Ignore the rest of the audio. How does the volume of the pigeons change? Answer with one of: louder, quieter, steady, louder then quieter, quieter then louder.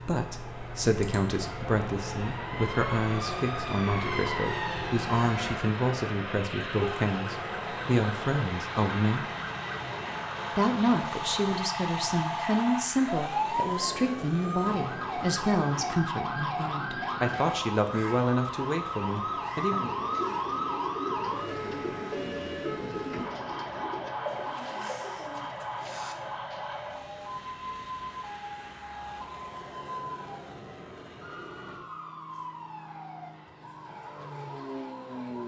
quieter.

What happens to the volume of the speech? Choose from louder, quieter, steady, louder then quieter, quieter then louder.
steady.